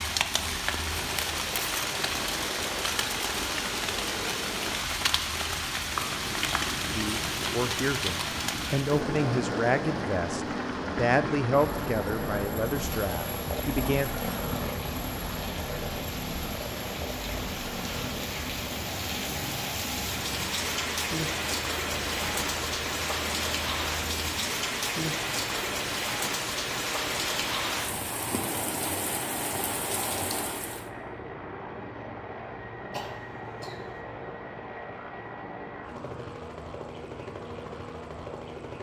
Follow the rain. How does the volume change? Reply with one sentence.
The volume of the rain goes down, then up.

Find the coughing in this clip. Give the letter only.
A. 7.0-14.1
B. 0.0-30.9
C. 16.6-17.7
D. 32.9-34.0
D.